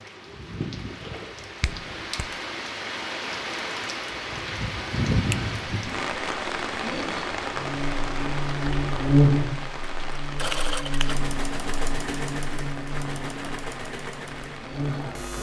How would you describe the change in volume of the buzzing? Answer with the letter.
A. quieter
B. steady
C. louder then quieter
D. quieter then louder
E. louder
A.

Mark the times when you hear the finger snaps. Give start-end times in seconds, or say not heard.
1.6-2.3, 10.5-11.1.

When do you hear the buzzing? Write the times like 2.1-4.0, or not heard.
7.5-15.3.